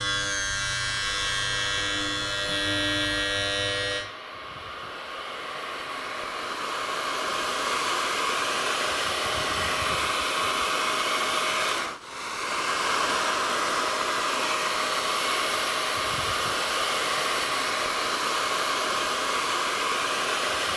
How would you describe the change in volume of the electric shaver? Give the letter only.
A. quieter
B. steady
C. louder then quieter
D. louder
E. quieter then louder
B.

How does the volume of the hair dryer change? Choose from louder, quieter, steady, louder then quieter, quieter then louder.
louder.